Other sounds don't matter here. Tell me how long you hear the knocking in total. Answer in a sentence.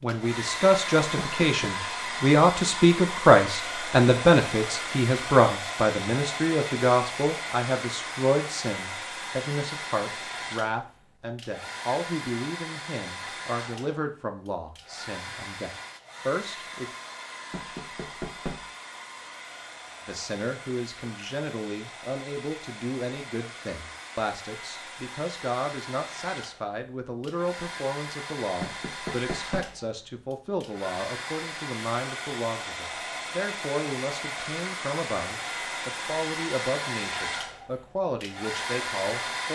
You can hear the knocking for 3 seconds altogether.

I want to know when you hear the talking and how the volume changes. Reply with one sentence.
The talking can be heard from 0.0 to 16.9 s, getting quieter; and from 20.1 to 39.5 s, at a steady volume.